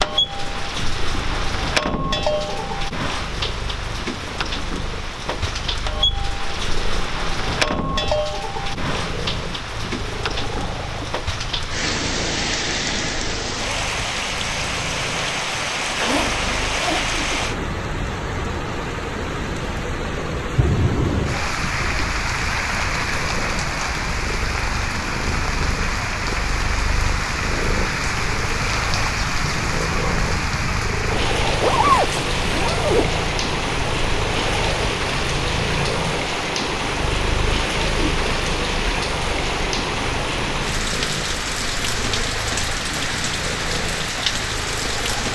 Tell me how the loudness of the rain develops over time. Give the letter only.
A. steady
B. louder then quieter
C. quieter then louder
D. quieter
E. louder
A.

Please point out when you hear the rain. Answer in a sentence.
You can hear the rain from 0.0 to 45.3 s.